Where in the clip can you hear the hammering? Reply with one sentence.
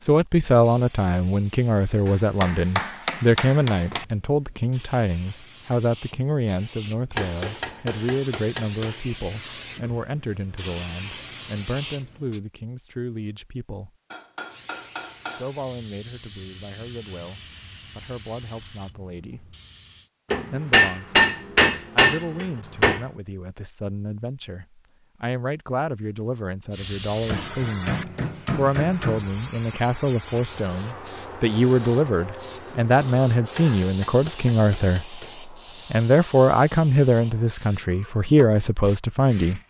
The hammering can be heard from 2.0 to 4.0 s, from 7.2 to 8.9 s, from 14.1 to 15.5 s, from 20.3 to 23.1 s, from 27.2 to 29.3 s and from 33.5 to 35.4 s.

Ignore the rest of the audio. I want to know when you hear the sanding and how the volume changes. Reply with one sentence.
The sanding can't be heard in this clip.